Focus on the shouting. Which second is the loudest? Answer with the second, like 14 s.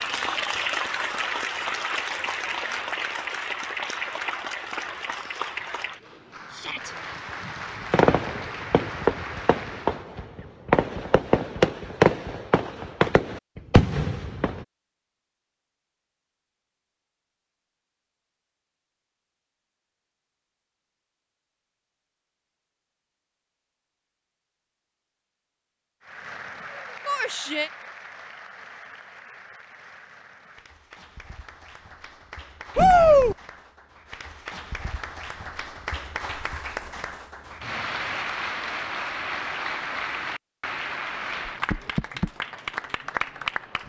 33 s.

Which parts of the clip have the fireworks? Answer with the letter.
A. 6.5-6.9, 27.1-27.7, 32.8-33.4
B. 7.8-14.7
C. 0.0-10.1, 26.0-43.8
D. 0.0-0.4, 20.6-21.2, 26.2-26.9
B.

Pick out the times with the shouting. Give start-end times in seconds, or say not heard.
6.5-6.9, 27.1-27.7, 32.8-33.4.